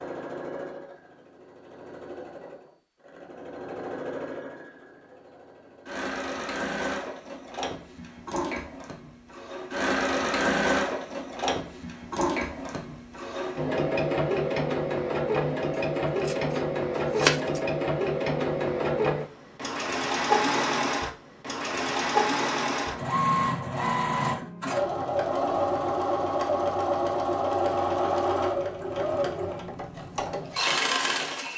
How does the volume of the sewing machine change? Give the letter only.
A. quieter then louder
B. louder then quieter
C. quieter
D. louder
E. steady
D.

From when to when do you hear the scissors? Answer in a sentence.
You can hear the scissors from 15.7 to 17.6 s.